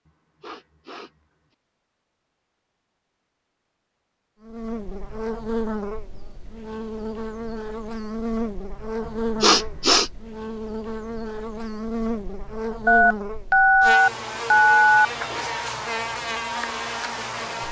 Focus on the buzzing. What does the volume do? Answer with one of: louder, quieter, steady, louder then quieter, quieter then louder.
steady.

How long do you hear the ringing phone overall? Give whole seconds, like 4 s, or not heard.
2 s.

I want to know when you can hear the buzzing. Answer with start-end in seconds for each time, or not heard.
4.4-17.6.